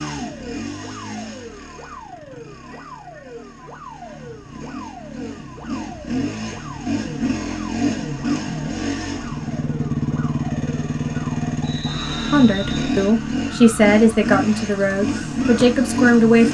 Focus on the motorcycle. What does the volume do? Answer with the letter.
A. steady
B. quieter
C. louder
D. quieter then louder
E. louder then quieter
C.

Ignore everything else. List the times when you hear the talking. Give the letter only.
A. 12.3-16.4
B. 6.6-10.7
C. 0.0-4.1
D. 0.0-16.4
A.